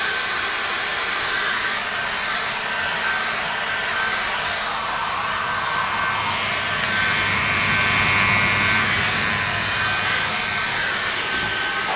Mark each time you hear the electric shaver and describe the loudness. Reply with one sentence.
You can hear the electric shaver from 0.0 to 11.9 s, getting louder then quieter.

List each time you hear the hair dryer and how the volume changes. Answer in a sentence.
The hair dryer can be heard from 0.0 to 11.9 s, at a steady volume.